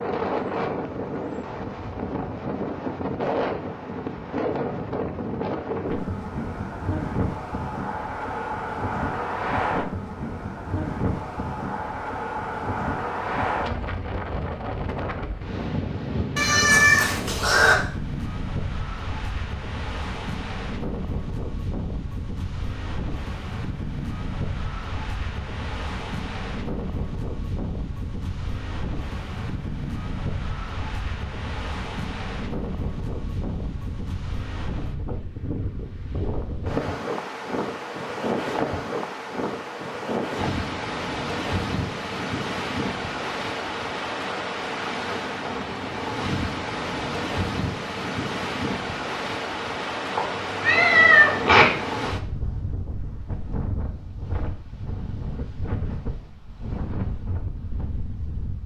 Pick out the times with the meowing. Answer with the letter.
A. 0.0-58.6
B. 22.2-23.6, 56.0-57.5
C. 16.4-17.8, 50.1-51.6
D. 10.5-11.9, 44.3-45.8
C.